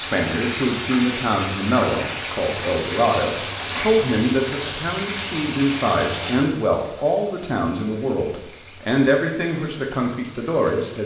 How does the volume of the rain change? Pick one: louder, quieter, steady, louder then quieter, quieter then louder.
quieter.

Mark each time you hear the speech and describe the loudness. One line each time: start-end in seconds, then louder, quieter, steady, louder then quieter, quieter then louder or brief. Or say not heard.
0.0-11.0 steady.